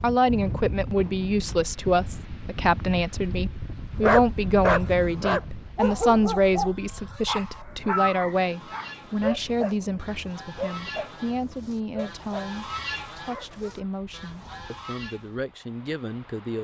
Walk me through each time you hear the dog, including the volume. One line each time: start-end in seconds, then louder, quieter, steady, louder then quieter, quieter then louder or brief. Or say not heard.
4.0-13.8 quieter.